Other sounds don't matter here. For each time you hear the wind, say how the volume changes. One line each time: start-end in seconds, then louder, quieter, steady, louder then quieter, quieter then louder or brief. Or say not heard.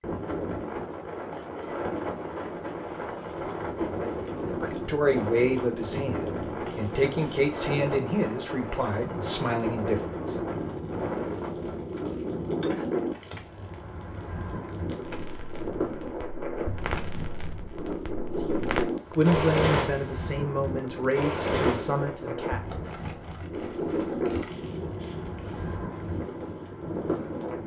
0.0-27.6 steady.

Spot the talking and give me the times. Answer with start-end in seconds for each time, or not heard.
4.5-10.3, 18.1-22.6.